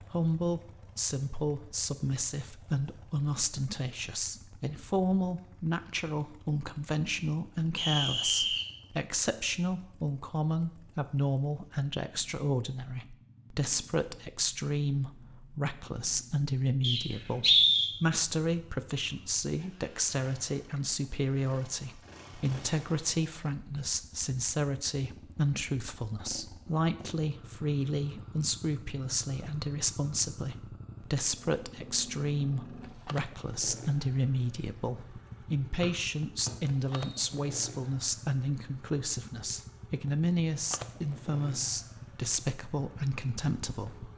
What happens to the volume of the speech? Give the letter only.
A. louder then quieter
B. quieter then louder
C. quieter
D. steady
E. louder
D.